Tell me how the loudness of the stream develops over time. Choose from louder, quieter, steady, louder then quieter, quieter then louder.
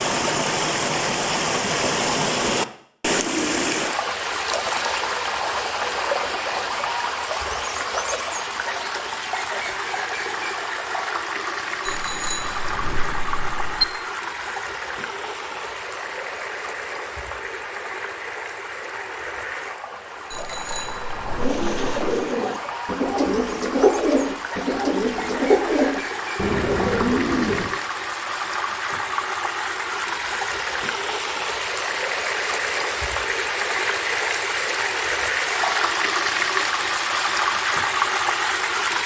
quieter then louder.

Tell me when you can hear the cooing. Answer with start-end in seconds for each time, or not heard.
21.4-27.8.